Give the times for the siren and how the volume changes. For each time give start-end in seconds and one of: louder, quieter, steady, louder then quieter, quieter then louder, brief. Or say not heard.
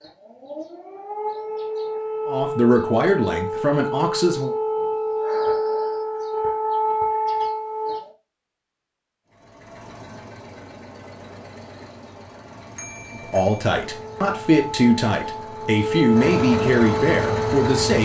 0.0-8.0 louder
13.8-17.9 louder.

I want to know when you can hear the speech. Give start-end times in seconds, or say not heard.
2.2-4.5, 13.2-17.9.